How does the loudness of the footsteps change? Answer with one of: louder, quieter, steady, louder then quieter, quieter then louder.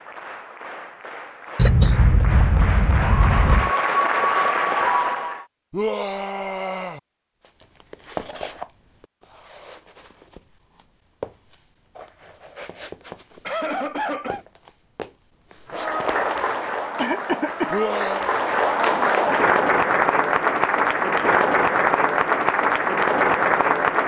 quieter then louder.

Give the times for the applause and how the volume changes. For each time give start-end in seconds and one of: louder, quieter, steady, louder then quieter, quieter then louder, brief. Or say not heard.
0.0-5.5 louder
15.7-24.0 louder.